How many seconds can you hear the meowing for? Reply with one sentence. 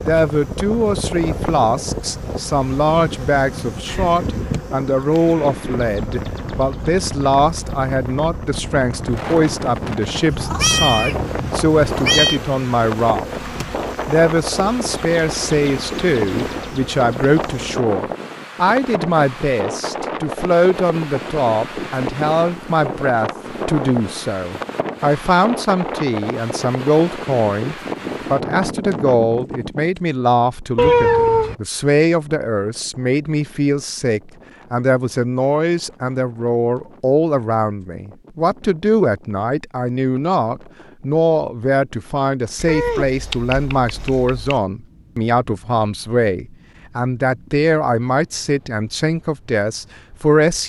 The meowing can be heard for 5 seconds in total.